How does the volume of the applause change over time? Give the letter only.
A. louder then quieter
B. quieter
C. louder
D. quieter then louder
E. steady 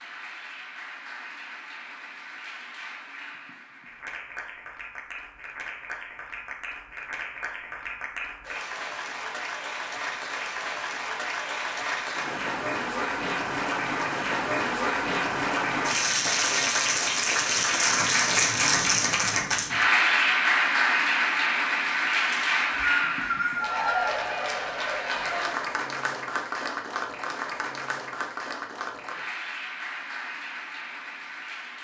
A.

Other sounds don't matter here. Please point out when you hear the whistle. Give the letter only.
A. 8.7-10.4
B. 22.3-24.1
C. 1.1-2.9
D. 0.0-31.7
B.